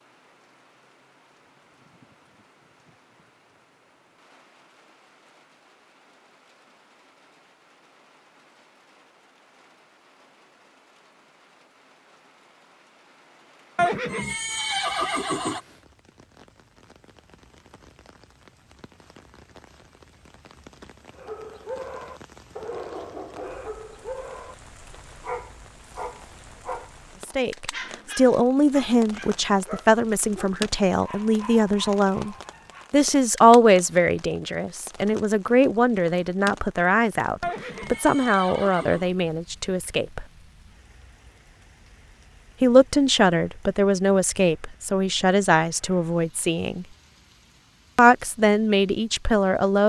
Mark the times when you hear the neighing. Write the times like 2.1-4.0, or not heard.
13.8-15.6, 37.4-39.1.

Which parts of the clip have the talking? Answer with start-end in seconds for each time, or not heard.
27.2-40.2, 42.6-46.9, 48.0-49.8.